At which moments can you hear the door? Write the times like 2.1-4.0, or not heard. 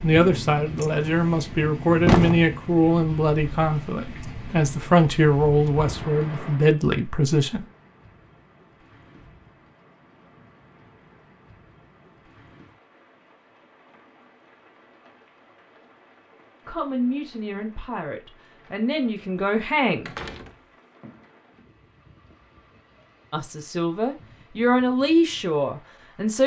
0.8-1.3, 2.0-2.5, 20.1-20.6.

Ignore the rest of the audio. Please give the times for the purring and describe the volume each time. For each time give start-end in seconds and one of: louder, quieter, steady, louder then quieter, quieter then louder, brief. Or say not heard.
not heard.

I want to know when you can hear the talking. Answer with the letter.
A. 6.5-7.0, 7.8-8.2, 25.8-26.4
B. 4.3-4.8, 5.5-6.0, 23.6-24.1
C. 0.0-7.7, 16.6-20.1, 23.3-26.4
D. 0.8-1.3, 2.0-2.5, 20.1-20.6
C.